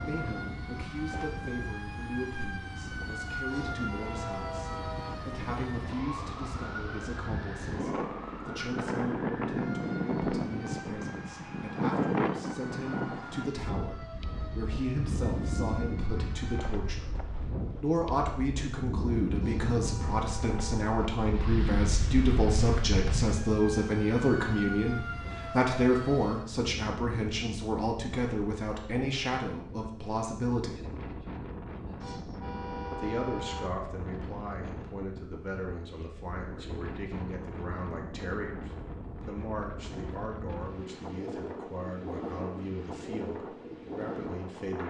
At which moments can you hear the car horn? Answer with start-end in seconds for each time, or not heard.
3.5-5.2, 19.4-21.1, 32.0-33.7.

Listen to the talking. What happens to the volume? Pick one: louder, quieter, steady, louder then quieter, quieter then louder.
louder then quieter.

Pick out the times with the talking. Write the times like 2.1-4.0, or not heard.
0.0-17.1, 17.8-30.9, 32.9-44.8.